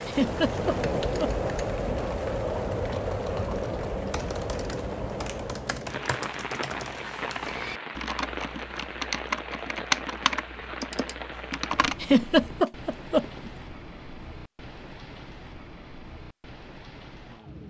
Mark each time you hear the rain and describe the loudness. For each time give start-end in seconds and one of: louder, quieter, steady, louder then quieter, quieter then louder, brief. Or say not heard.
0.0-17.6 quieter.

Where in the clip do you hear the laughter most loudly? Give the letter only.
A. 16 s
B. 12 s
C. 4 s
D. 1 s
B.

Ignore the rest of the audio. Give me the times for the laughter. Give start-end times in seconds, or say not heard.
0.1-1.4, 12.0-13.5.